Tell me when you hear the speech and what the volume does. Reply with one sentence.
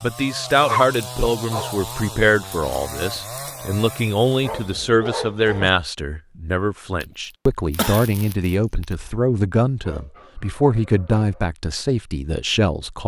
You can hear the speech from 0.0 to 13.0 s, at a steady volume.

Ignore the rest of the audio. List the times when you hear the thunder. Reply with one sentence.
The thunder can't be heard in this clip.